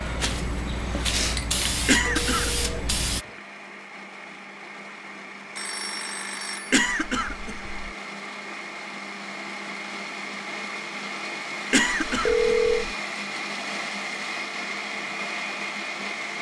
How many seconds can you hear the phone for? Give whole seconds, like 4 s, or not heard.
3 s.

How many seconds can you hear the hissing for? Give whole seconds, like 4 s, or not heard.
3 s.